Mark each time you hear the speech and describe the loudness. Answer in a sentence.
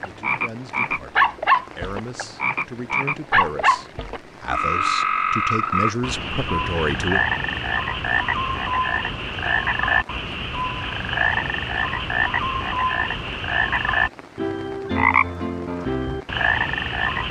The speech can be heard from 0.0 to 7.2 s, getting louder.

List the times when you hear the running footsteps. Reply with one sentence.
The running footsteps can't be heard in this clip.